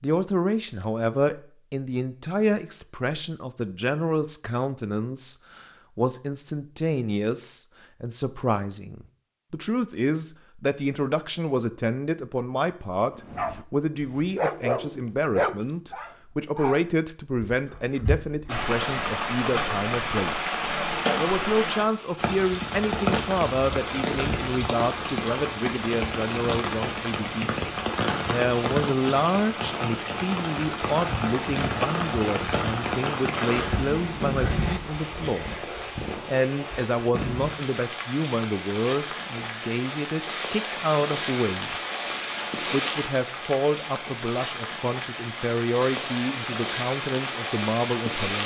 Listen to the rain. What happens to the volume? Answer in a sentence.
The volume of the rain stays about the same.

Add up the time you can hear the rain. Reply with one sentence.
You can hear the rain for 30 seconds altogether.